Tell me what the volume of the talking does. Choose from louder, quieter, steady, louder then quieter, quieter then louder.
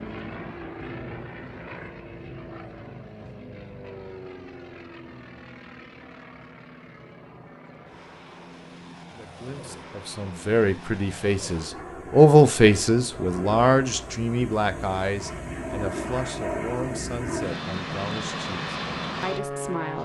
louder then quieter.